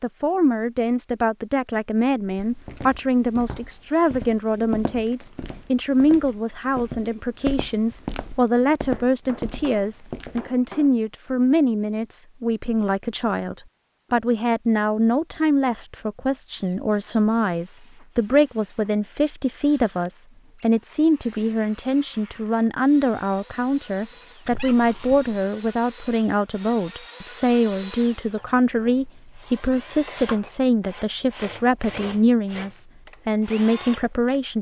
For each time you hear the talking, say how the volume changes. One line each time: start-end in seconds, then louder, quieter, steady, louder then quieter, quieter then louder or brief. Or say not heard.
0.0-34.5 steady.